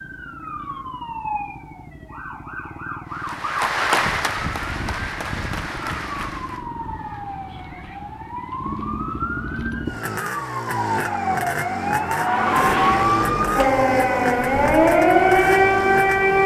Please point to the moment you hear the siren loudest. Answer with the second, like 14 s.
15 s.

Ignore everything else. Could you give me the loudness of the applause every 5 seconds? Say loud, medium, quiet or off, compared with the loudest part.
loud, medium, off, off.